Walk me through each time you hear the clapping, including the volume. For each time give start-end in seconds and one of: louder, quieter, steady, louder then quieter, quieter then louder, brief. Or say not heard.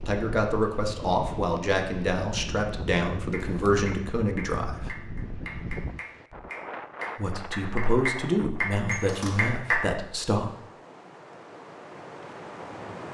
3.3-9.8 louder.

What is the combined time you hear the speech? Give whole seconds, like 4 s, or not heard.
8 s.